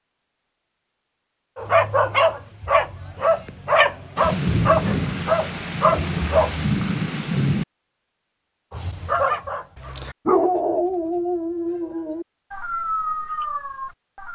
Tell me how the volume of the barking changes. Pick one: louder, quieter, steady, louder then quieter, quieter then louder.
quieter.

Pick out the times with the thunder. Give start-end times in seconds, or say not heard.
4.2-7.7.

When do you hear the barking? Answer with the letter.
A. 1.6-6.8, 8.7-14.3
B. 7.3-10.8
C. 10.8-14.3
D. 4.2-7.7
A.